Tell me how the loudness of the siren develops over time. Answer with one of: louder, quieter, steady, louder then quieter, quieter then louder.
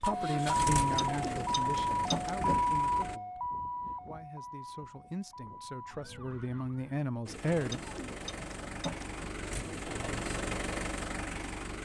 quieter.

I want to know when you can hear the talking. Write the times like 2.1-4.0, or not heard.
0.0-7.8.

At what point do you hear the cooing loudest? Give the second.
2 s.